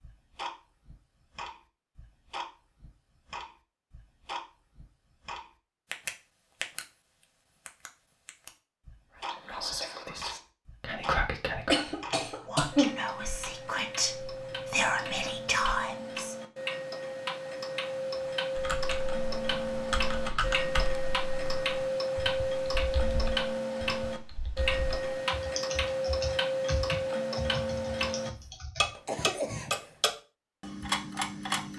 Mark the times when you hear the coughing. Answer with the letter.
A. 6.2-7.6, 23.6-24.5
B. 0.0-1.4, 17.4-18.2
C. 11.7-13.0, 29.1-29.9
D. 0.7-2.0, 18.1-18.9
C.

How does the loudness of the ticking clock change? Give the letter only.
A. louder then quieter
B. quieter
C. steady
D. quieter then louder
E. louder
E.